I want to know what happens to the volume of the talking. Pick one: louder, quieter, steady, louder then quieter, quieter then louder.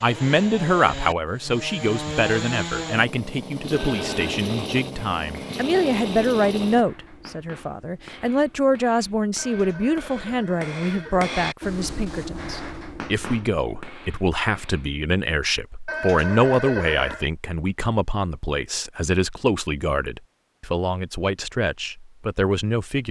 steady.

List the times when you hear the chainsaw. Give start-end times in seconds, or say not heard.
0.0-6.8.